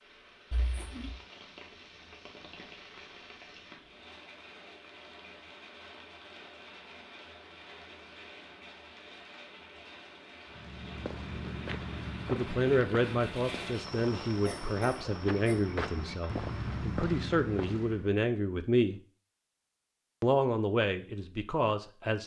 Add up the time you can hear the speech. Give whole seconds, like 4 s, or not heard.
9 s.